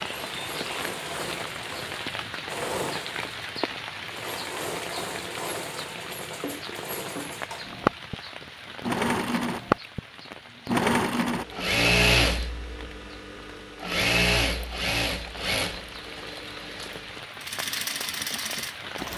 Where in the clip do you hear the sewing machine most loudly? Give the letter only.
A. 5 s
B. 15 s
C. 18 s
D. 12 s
D.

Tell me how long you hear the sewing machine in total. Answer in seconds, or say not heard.
19 s.